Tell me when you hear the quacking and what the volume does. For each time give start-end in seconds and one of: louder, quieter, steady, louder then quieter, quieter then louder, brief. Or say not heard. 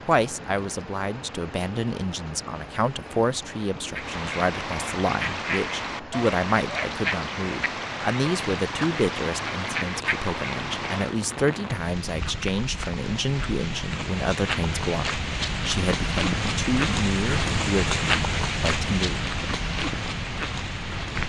3.9-11.2 steady.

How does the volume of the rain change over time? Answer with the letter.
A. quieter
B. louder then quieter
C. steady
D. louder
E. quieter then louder
D.